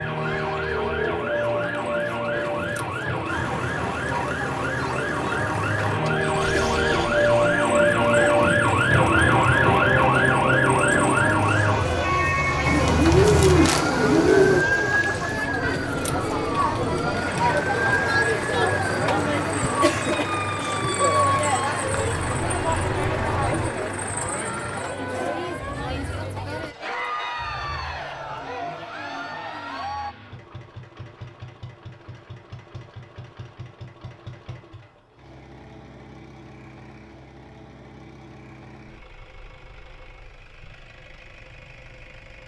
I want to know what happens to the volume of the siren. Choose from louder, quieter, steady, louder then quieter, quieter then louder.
louder then quieter.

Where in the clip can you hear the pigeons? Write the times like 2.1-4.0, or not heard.
12.6-14.7.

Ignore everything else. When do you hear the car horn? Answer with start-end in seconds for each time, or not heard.
not heard.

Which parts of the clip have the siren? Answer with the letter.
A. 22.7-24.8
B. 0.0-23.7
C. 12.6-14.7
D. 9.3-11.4
B.